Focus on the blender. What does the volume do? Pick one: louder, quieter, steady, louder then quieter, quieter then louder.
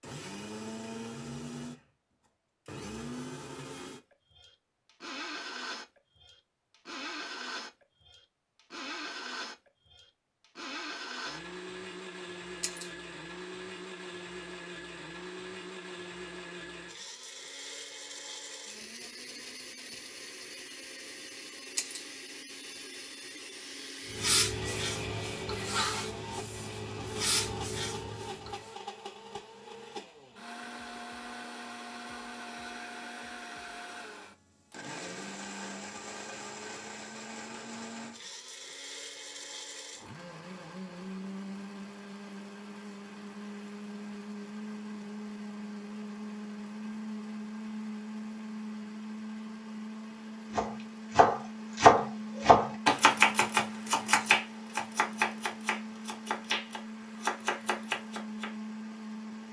steady.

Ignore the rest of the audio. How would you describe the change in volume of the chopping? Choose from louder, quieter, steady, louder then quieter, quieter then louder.
quieter.